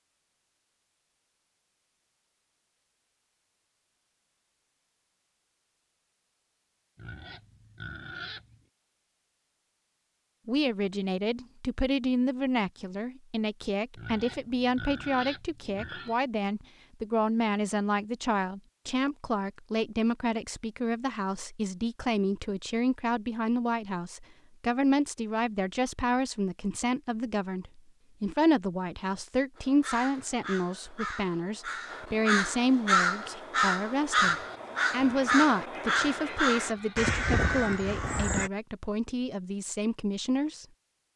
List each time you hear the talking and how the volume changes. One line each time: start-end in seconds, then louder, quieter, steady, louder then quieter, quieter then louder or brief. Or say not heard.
10.4-40.6 steady.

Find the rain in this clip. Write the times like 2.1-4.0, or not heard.
not heard.